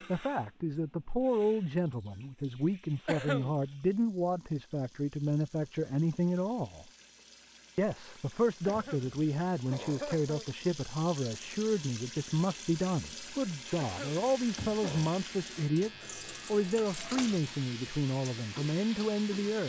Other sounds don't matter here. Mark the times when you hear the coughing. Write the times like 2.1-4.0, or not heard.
3.0-3.5, 8.7-10.7, 13.8-15.1.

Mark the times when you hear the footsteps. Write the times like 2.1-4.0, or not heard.
not heard.